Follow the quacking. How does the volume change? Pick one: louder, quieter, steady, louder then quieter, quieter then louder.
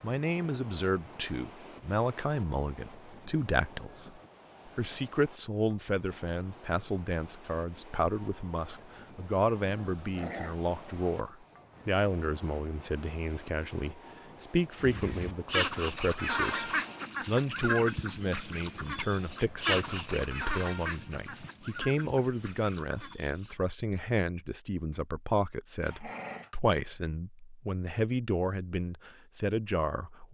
quieter.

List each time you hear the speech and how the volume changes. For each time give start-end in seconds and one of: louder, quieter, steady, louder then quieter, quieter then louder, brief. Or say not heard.
0.0-30.2 steady.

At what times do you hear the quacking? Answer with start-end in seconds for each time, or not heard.
14.8-23.6.